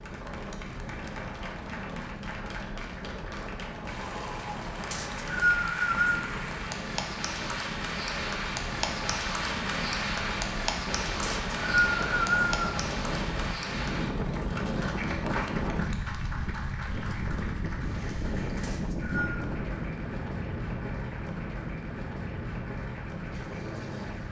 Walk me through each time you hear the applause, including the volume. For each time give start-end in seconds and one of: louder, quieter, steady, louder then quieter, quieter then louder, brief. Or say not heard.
0.0-24.2 louder then quieter.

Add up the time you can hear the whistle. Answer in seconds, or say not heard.
4 s.